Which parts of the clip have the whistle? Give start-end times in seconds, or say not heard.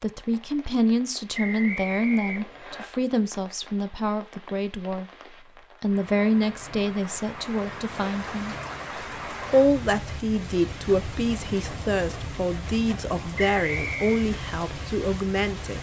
1.3-2.9, 13.3-14.2.